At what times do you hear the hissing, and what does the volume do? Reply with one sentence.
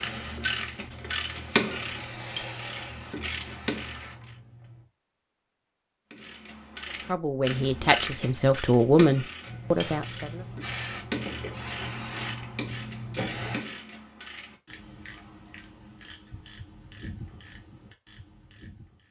The hissing can be heard from 0.0 to 4.8 s, getting louder then quieter; and from 9.4 to 13.7 s, at a steady volume.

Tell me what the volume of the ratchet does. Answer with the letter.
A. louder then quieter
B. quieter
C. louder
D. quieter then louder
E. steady
B.